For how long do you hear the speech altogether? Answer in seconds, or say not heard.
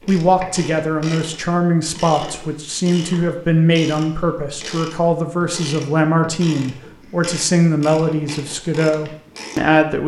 10 s.